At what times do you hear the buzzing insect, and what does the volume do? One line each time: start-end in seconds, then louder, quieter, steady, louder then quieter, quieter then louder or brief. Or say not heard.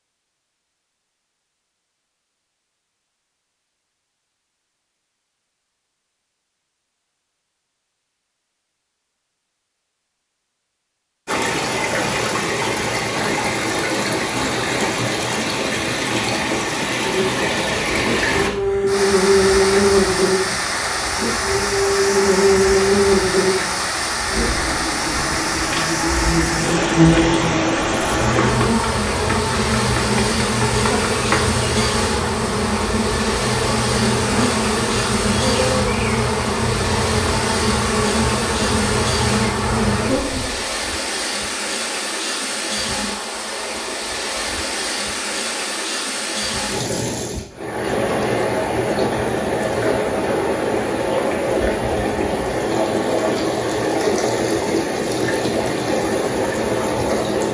17.0-40.6 steady.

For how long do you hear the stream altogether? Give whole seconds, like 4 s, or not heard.
46 s.